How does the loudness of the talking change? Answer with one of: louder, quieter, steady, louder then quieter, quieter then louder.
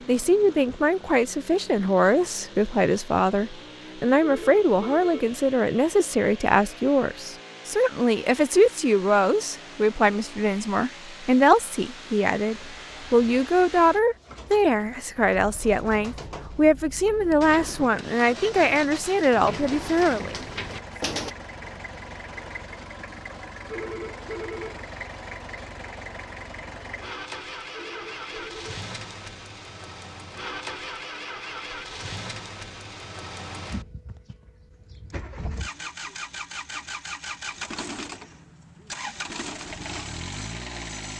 steady.